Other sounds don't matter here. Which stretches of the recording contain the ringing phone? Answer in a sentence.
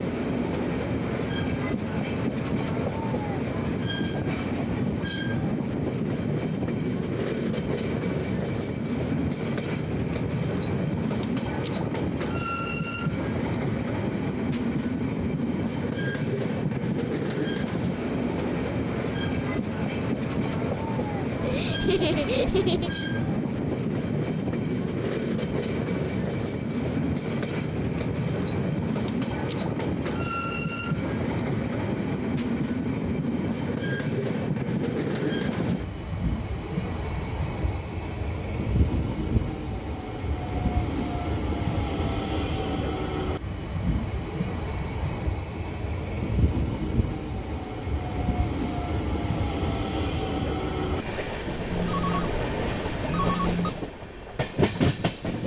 The ringing phone can be heard from 51.7 to 53.7 s.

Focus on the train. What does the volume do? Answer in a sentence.
The volume of the train stays about the same.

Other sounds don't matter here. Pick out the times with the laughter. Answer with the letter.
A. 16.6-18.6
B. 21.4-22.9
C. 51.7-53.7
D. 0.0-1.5
B.